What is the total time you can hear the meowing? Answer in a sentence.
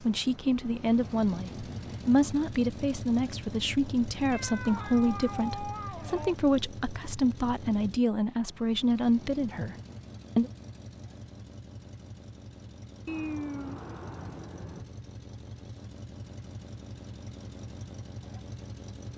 You can hear the meowing for 4 seconds altogether.